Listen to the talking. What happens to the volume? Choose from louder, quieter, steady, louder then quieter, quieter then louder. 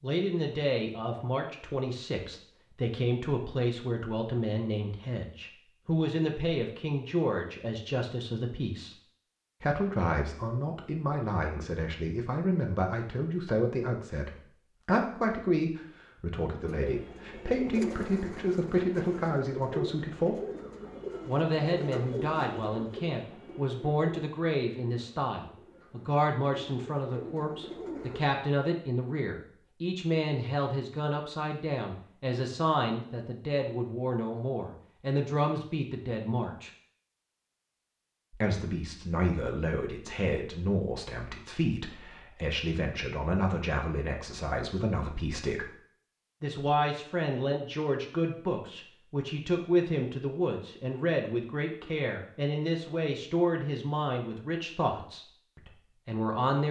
steady.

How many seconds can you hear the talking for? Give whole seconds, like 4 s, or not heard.
53 s.